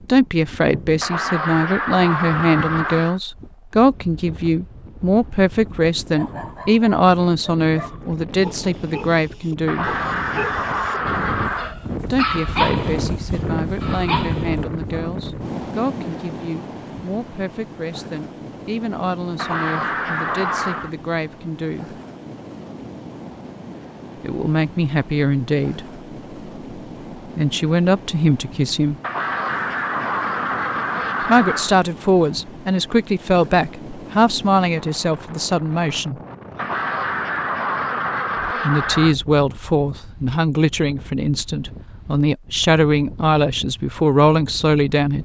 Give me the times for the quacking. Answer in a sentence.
The quacking can be heard from 1.0 to 3.2 s, from 9.7 to 11.8 s, from 19.4 to 20.9 s, from 29.0 to 31.8 s and from 36.5 to 39.1 s.